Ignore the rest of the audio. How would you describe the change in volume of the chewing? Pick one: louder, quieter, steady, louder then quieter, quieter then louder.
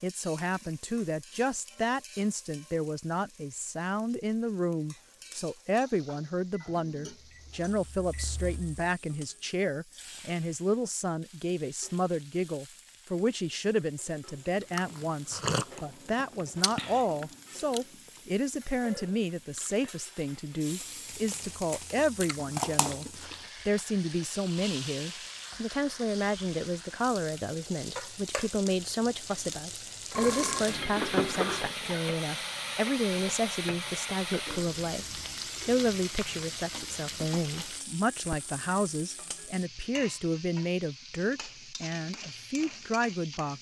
quieter then louder.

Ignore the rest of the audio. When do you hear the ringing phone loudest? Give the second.
31 s.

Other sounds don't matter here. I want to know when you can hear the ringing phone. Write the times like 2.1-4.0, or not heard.
30.1-31.7.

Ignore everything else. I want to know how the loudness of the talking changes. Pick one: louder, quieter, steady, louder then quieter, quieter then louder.
steady.